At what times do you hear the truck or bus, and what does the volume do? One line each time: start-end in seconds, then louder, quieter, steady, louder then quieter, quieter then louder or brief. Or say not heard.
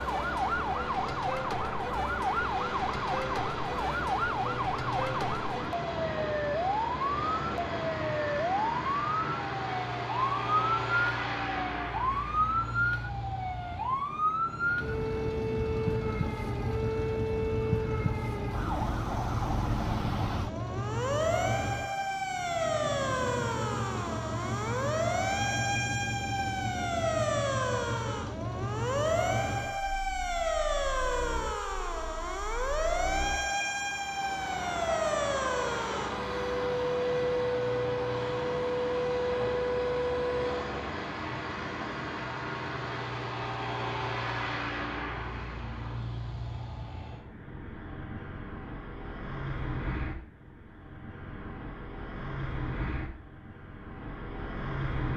0.0-55.1 steady.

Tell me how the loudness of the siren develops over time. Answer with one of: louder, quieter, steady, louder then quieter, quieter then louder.
steady.